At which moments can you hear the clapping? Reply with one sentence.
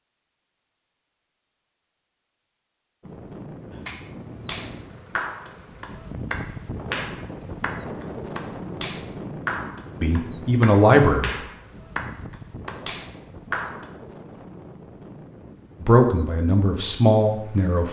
You can hear the clapping from 3.7 to 13.9 s.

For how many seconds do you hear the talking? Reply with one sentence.
You can hear the talking for 3 seconds altogether.